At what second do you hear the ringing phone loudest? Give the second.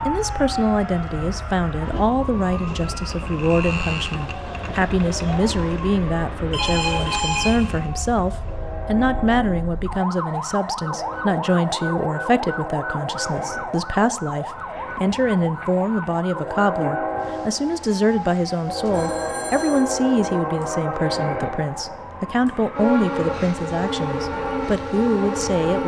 7 s.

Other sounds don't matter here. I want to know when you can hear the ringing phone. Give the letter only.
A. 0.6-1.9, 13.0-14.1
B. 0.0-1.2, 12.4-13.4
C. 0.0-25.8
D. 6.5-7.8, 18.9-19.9
D.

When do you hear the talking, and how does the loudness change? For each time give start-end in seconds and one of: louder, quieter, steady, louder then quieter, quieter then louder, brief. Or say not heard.
0.0-25.8 steady.